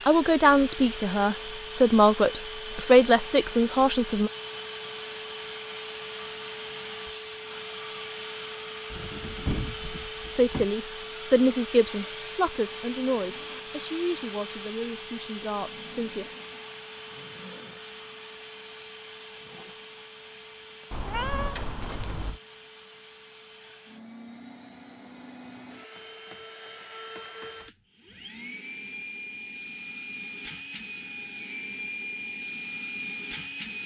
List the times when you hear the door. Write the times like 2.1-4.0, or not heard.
8.9-10.7, 21.5-22.3.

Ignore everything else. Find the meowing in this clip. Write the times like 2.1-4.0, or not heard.
20.9-22.4.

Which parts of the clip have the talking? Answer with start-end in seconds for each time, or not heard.
0.1-4.3, 10.3-16.2.